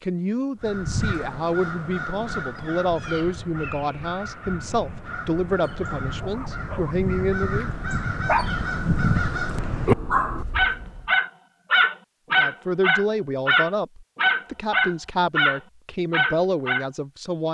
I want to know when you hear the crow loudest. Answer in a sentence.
The volume of the crow peaks at 10 seconds.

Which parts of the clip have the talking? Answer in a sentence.
The talking can be heard from 0.0 to 7.8 s and from 12.3 to 17.4 s.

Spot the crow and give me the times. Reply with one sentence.
You can hear the crow from 0.6 to 11.1 s.